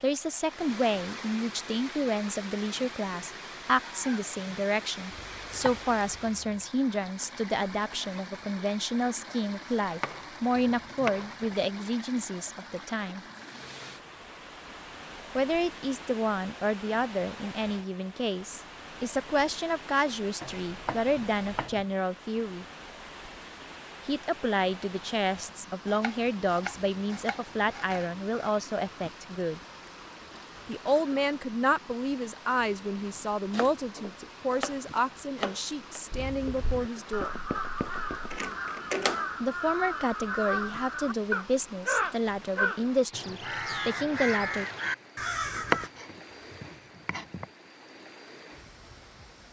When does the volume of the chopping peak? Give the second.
46 s.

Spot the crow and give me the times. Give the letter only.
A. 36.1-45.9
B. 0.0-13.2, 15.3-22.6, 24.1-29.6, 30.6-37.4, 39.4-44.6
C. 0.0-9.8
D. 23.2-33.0
A.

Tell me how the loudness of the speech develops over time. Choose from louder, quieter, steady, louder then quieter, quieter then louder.
steady.